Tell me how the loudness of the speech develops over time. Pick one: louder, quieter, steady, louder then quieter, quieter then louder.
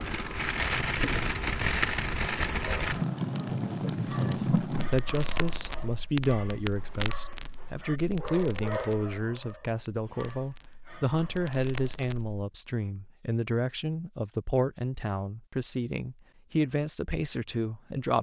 steady.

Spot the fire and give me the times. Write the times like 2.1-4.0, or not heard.
0.0-12.4.